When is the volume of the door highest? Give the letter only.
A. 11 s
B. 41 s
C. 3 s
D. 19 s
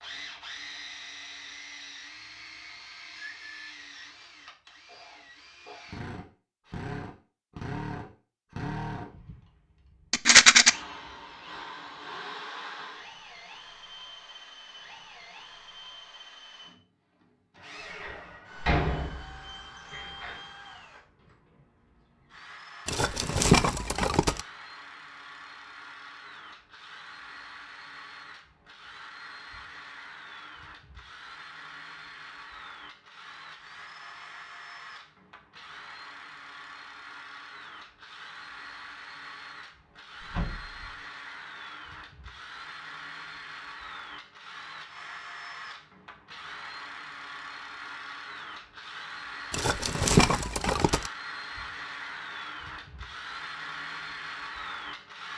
D.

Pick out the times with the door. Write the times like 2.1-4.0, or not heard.
17.9-20.4, 40.3-40.9.